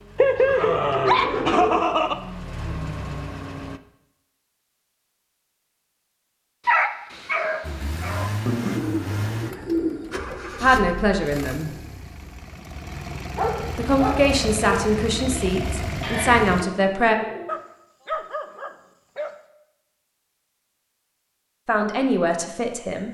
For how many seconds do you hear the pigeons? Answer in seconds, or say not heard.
5 s.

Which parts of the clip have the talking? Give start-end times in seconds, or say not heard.
10.6-11.7, 13.8-17.1, 21.6-23.1.